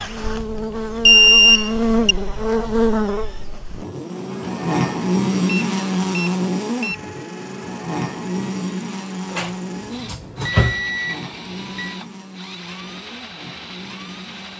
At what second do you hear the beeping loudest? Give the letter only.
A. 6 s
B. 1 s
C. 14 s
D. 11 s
B.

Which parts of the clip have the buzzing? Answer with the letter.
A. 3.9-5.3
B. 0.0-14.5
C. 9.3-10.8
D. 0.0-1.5
B.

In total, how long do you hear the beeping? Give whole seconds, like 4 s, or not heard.
5 s.